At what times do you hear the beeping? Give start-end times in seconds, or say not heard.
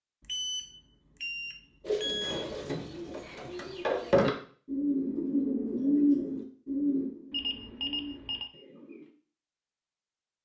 0.2-2.5, 7.3-8.5.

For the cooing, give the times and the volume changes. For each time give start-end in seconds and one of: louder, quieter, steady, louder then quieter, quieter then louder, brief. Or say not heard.
1.8-9.1 louder then quieter.